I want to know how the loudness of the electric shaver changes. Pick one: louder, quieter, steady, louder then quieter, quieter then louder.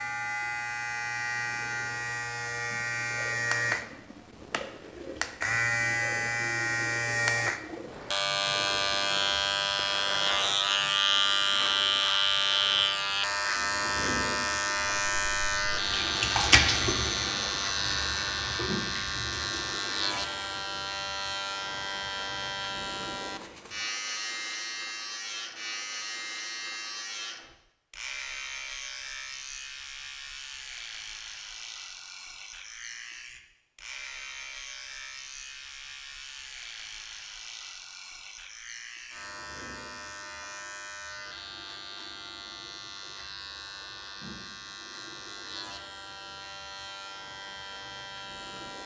quieter.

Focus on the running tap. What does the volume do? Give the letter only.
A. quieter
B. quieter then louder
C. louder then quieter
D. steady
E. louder
C.